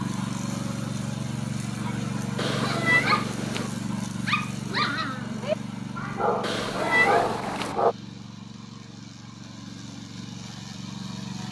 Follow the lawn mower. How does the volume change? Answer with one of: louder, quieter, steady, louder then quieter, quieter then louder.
quieter.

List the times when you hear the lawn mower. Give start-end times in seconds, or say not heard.
0.0-11.4.